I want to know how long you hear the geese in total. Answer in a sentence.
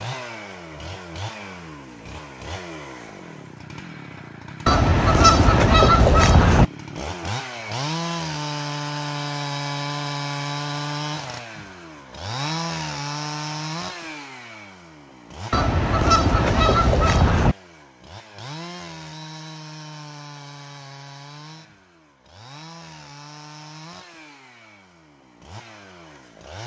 You can hear the geese for 4 seconds altogether.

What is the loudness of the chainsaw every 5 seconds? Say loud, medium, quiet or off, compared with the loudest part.
medium, loud, loud, medium, quiet, quiet.